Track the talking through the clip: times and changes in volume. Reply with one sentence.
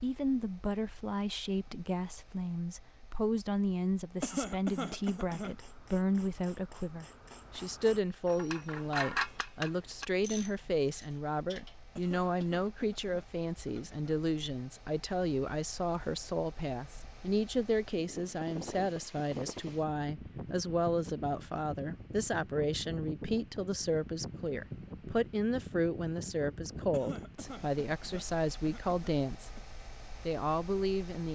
The talking can be heard from 0.0 to 29.6 s, at a steady volume; and briefly from 30.2 to 31.2 s.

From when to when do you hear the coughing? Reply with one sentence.
You can hear the coughing from 4.2 to 5.5 s, from 11.9 to 14.2 s and from 26.9 to 29.6 s.